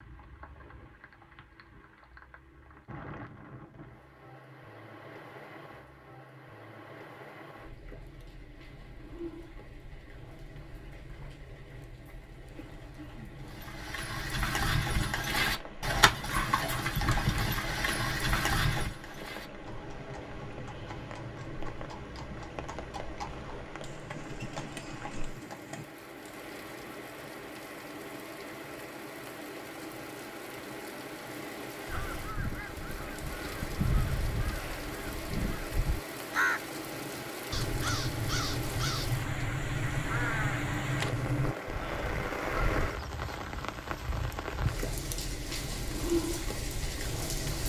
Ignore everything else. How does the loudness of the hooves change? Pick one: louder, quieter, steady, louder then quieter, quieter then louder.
quieter.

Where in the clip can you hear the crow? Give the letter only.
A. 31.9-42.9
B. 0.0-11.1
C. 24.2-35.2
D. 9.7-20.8
A.